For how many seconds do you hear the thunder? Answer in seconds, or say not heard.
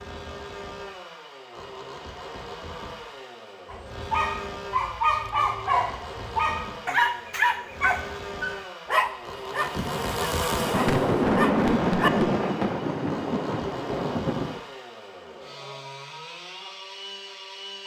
5 s.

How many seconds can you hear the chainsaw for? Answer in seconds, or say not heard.
18 s.